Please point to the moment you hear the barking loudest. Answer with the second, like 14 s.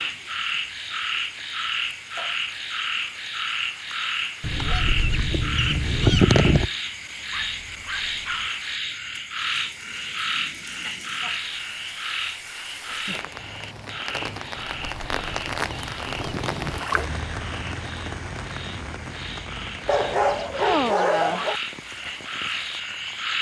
21 s.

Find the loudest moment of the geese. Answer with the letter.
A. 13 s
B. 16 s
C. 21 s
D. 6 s
D.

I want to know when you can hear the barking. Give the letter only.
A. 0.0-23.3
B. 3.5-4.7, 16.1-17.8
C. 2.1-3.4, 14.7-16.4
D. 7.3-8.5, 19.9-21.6
D.